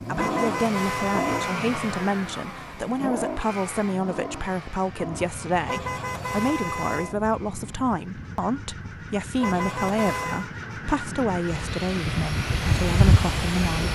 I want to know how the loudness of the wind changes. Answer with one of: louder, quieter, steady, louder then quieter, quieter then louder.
louder.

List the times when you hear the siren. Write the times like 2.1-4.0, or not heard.
not heard.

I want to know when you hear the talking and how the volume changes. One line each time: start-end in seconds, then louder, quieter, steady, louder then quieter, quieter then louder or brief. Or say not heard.
0.0-13.9 steady.